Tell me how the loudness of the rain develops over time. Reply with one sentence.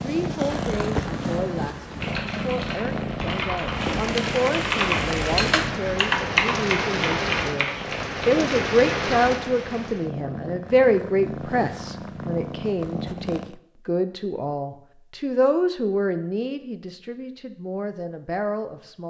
The loudness of the rain goes up.